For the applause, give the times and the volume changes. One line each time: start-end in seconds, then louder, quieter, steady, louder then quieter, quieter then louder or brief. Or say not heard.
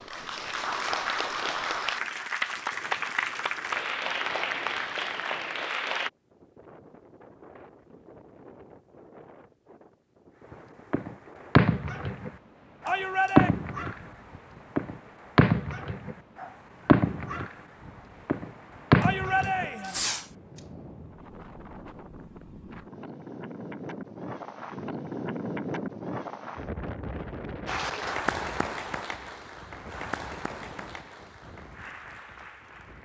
0.0-6.1 steady
27.6-33.0 quieter.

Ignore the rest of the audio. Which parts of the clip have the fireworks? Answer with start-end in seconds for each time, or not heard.
10.9-13.9, 14.8-17.5, 18.2-20.2.